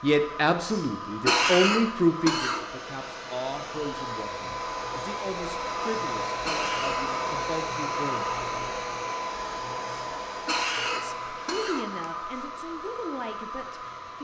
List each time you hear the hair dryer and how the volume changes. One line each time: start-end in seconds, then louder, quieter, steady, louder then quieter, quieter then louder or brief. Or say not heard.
0.0-14.1 louder then quieter.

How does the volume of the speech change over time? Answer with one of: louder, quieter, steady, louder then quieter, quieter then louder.
quieter.